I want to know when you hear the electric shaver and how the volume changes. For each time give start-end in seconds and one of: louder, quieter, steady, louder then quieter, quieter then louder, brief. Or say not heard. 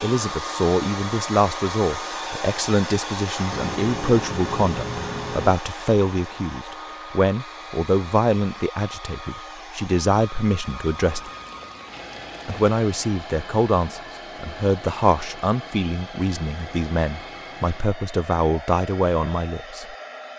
not heard.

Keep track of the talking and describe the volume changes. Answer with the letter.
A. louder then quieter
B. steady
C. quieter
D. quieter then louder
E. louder
B.